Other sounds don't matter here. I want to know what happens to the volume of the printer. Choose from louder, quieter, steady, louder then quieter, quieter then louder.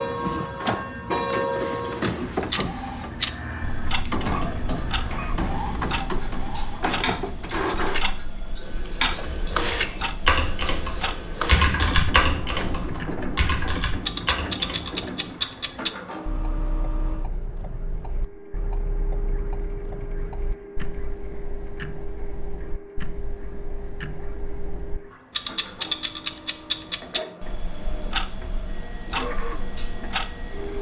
quieter.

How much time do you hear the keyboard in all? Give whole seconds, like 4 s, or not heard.
11 s.